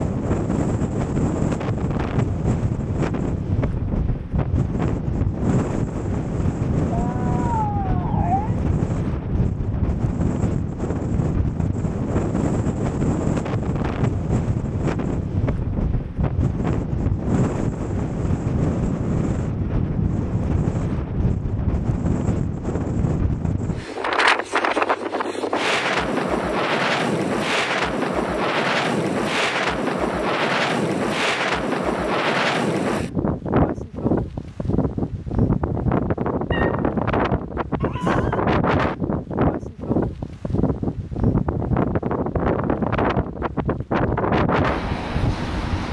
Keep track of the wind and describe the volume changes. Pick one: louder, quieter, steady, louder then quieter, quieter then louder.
steady.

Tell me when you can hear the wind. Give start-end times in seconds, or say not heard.
0.0-45.8.